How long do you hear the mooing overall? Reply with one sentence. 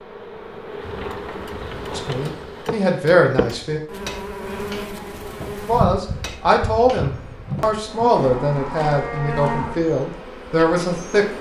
The mooing can be heard for 2 seconds in total.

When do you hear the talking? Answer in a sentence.
The talking can be heard from 1.9 to 3.8 s and from 5.7 to 11.2 s.